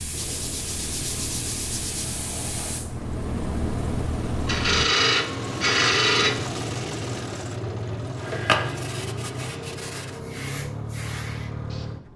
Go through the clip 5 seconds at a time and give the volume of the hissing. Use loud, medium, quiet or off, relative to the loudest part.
loud, off, medium.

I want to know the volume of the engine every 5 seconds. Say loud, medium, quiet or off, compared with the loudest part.
medium, loud, loud.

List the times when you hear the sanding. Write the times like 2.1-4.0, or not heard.
0.1-2.2, 4.5-6.5, 8.2-10.1.